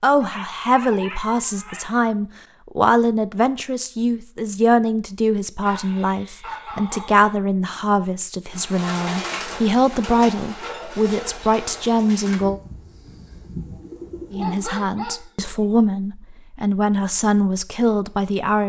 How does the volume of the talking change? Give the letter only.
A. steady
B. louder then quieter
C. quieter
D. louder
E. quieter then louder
A.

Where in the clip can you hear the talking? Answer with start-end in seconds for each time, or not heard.
0.0-12.6, 14.3-18.6.